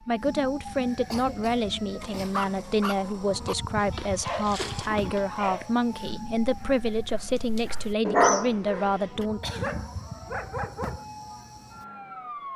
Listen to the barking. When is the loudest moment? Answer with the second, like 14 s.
8 s.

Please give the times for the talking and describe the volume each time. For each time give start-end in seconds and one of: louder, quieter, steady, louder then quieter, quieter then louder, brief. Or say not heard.
0.1-9.4 steady.